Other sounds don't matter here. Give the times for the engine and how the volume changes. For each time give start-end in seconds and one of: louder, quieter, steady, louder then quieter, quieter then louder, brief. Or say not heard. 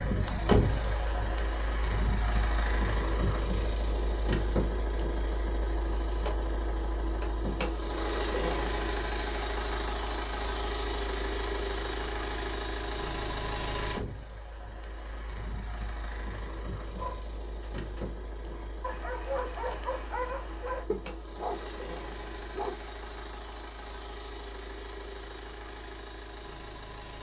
0.0-27.1 quieter.